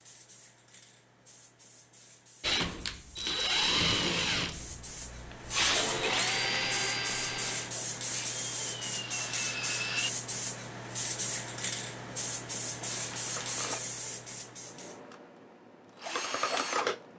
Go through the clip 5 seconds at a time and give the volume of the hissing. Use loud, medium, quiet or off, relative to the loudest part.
quiet, loud, loud, off.